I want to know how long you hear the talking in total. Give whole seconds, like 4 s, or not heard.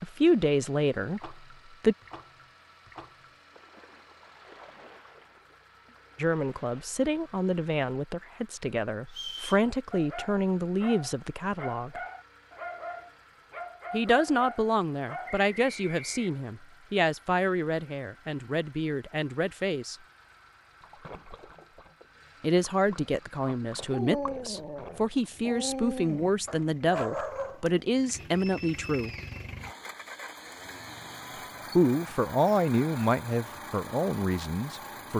24 s.